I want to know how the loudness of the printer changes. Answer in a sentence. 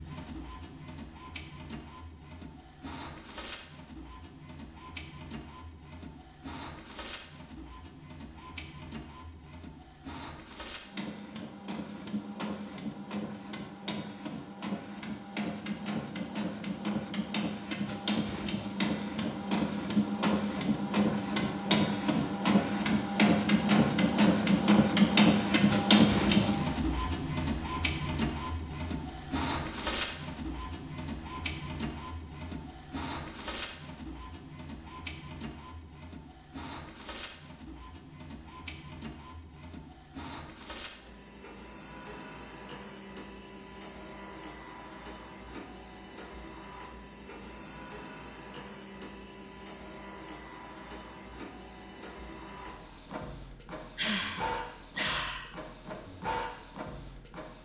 The volume of the printer goes up, then down.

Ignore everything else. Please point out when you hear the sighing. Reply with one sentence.
The sighing can be heard from 54.0 to 55.5 s.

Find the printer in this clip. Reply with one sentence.
You can hear the printer from 0.0 to 57.6 s.